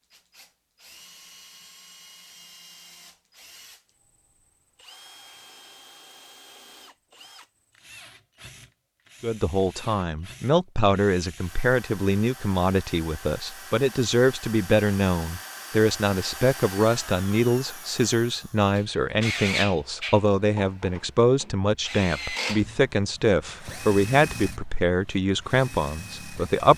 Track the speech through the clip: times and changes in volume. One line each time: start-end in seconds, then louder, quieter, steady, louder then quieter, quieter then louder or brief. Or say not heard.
9.2-26.7 steady.